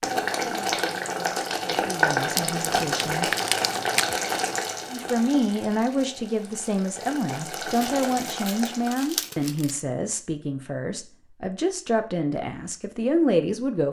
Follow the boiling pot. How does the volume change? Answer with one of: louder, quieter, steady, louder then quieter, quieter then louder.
quieter then louder.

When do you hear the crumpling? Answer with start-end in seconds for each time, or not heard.
2.4-4.2, 7.7-9.8.